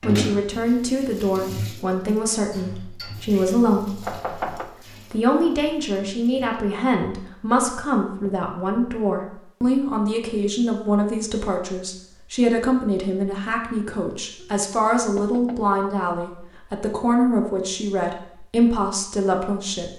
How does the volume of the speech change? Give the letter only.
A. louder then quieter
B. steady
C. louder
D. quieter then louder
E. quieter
B.